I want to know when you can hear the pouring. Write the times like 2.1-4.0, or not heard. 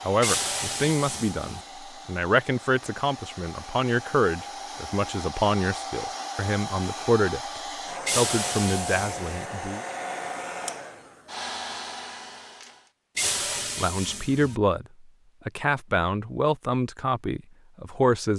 0.2-1.6, 8.1-9.4, 13.2-14.6.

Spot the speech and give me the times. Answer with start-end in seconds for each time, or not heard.
0.1-7.5, 8.1-9.8, 13.2-18.3.